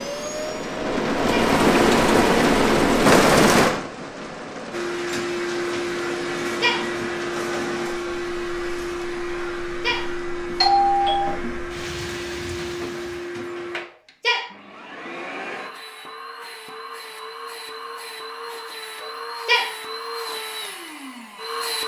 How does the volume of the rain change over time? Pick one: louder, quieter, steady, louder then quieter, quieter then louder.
quieter then louder.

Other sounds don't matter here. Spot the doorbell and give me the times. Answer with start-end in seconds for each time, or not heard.
10.6-11.3.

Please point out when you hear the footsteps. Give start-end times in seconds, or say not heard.
not heard.